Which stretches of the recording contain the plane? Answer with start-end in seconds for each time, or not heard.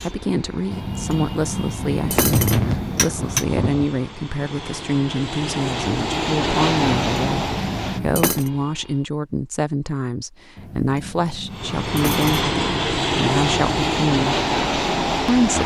0.0-9.1, 11.5-15.6.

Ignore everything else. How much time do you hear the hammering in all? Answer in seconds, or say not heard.
6 s.